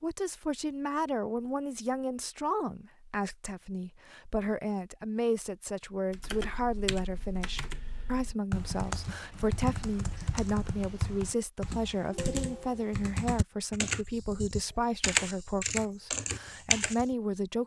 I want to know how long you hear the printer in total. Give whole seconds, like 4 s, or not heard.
not heard.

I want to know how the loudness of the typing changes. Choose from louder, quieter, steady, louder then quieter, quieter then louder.
louder.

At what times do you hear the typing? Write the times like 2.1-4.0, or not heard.
6.1-17.1.